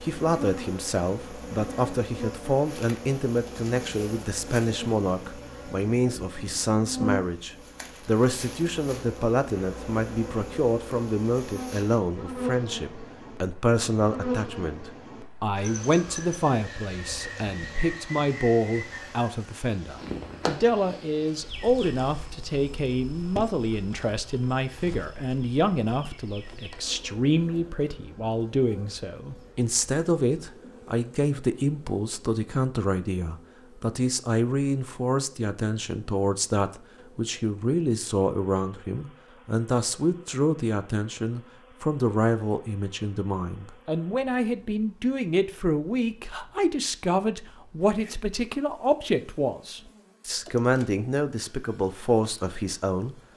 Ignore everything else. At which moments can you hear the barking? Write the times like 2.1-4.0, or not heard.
not heard.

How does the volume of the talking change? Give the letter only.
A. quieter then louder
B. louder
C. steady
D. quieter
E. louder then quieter
C.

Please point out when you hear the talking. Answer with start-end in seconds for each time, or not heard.
0.0-53.1.